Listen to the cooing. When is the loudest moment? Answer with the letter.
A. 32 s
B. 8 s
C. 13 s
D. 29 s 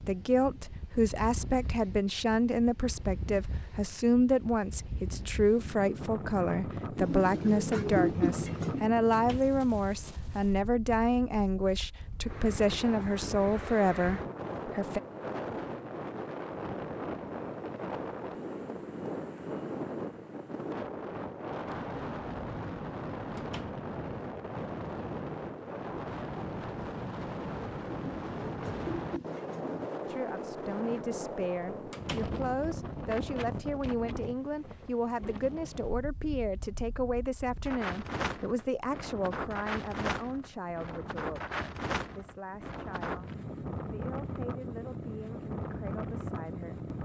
B.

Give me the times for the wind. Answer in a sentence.
You can hear the wind from 0.0 to 47.0 s.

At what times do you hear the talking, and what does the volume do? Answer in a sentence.
You can hear the talking from 0.0 to 15.0 s, at a steady volume; and from 30.1 to 47.0 s, getting quieter.